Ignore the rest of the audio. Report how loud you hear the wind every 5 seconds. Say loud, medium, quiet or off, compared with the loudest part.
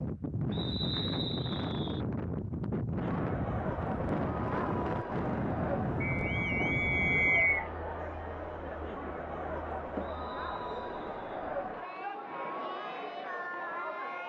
loud, loud, off.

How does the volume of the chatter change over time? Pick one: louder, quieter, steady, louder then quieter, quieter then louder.
steady.